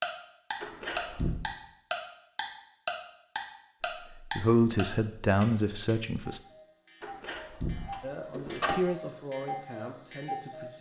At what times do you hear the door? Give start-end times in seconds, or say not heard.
0.6-1.4, 7.0-8.8.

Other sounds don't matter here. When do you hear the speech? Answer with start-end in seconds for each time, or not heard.
4.1-6.4, 8.0-10.7.